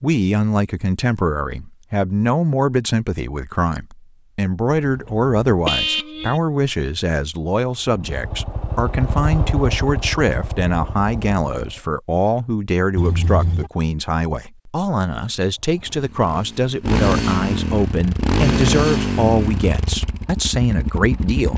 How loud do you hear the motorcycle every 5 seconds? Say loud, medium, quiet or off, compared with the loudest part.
off, medium, medium, loud, medium.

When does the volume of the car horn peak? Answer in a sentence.
The volume of the car horn peaks at 6 seconds.